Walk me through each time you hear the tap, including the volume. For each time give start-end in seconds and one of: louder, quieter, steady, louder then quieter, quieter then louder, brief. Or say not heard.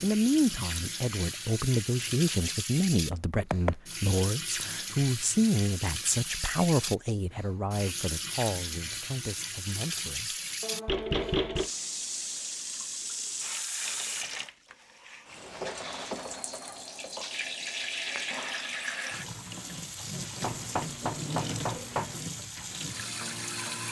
0.0-23.8 steady.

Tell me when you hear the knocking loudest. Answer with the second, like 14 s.
11 s.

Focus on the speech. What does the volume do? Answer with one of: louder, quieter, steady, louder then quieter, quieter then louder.
quieter.